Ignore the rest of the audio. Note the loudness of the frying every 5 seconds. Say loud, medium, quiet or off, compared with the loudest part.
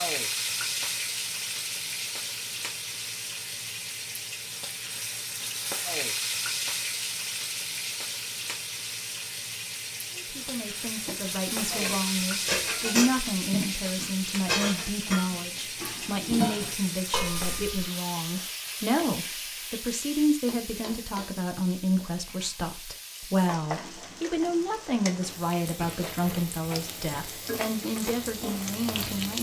loud, loud, loud, loud, medium, loud.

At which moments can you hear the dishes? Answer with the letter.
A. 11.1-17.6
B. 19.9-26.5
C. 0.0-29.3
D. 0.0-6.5
A.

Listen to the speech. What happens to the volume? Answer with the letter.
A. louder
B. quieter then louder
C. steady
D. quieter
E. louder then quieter
C.